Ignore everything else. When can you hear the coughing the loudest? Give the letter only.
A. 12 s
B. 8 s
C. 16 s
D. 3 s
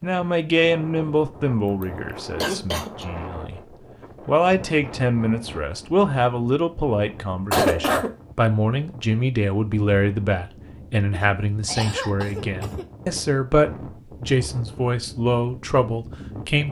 B.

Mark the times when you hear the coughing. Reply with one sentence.
The coughing can be heard from 1.8 to 3.0 s, from 7.5 to 8.2 s and from 11.1 to 12.8 s.